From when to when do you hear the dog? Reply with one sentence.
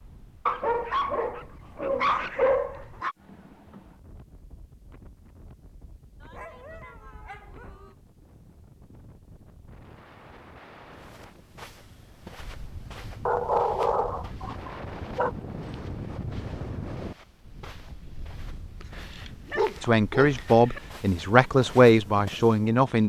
The dog can be heard from 0.5 to 3.1 s, from 6.2 to 8.0 s, from 13.2 to 15.3 s and from 18.8 to 20.8 s.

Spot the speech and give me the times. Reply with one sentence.
You can hear the speech from 19.8 to 23.0 s.